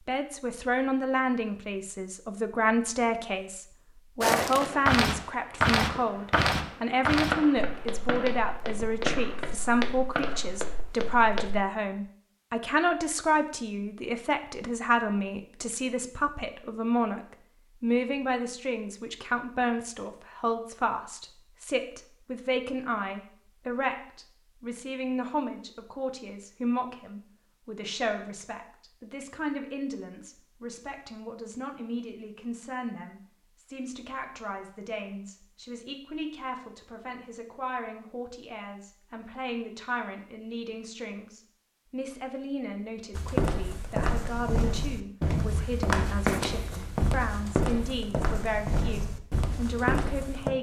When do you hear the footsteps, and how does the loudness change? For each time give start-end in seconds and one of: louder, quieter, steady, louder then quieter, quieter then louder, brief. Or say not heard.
4.2-11.6 quieter
43.1-50.5 steady.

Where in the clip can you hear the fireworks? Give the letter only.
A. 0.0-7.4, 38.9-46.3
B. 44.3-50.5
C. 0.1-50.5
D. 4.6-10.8
D.